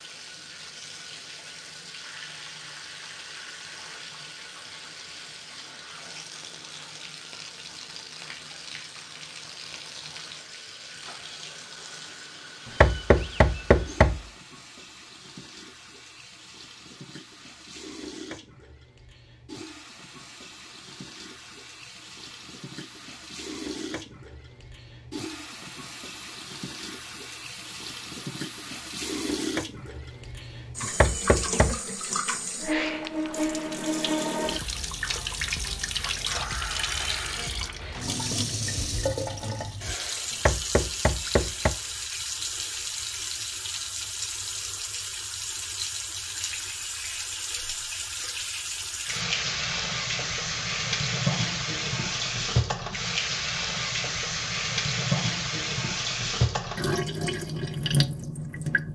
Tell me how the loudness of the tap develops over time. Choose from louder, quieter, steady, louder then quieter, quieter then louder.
louder.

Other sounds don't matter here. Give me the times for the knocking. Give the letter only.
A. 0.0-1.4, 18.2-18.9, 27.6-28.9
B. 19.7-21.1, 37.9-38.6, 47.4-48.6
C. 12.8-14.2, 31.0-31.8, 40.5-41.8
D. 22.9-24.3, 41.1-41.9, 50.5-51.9
C.